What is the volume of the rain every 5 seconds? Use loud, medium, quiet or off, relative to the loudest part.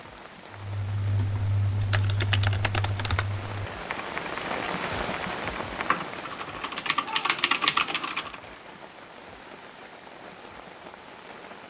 loud, loud, medium.